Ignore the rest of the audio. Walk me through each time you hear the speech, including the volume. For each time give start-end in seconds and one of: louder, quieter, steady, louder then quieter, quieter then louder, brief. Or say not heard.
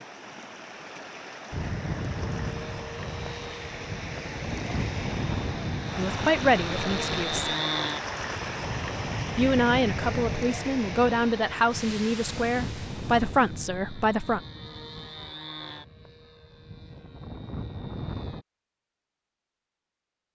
6.0-7.5 brief
9.3-14.4 steady.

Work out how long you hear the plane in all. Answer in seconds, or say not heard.
17 s.